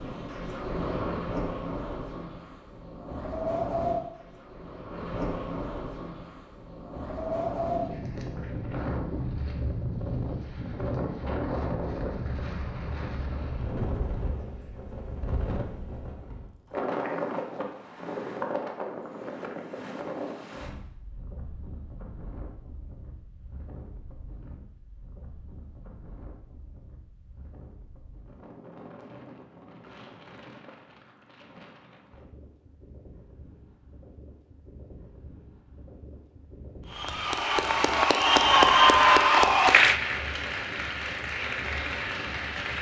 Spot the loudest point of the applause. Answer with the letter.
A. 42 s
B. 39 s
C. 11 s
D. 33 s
B.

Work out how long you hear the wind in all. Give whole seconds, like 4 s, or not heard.
43 s.